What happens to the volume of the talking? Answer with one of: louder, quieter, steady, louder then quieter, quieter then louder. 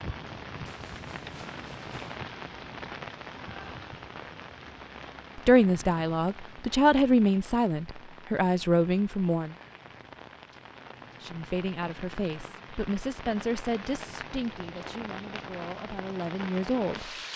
quieter.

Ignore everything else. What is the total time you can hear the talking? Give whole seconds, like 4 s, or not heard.
10 s.